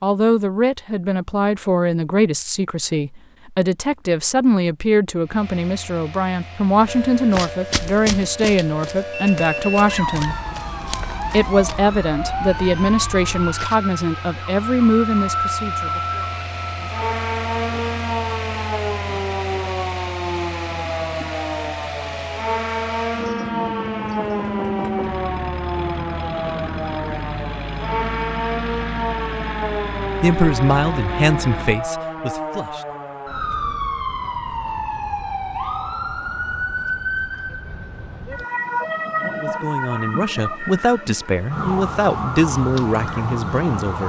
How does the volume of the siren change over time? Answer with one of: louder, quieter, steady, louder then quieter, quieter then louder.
steady.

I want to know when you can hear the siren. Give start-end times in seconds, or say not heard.
6.8-44.0.